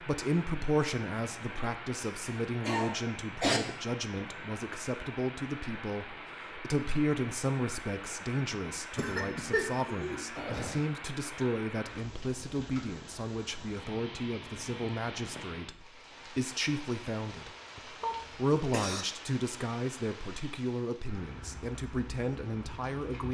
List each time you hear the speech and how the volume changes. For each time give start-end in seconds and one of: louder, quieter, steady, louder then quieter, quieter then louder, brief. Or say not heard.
0.0-23.2 steady.